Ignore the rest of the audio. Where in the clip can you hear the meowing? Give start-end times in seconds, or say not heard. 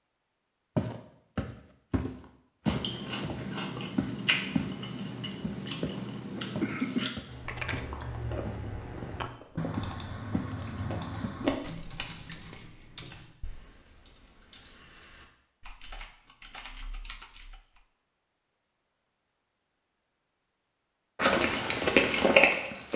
not heard.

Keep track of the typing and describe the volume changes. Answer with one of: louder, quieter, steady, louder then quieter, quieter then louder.
quieter then louder.